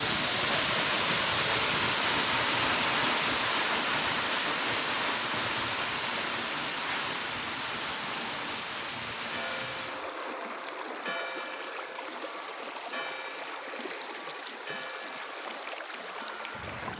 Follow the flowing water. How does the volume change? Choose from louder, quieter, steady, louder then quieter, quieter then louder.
quieter.